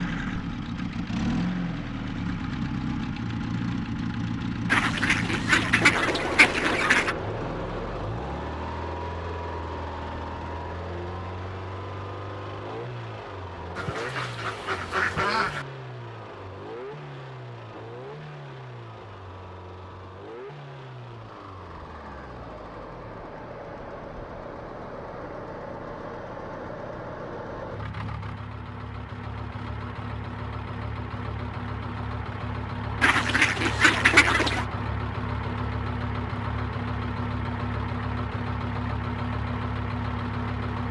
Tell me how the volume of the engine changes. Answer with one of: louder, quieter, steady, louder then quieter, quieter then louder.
quieter then louder.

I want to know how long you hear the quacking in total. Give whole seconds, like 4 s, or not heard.
6 s.